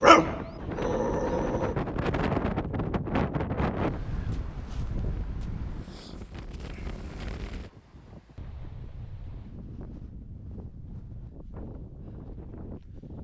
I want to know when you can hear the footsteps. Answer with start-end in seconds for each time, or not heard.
not heard.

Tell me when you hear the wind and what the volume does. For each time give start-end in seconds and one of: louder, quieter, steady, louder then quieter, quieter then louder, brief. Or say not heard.
0.0-13.1 quieter.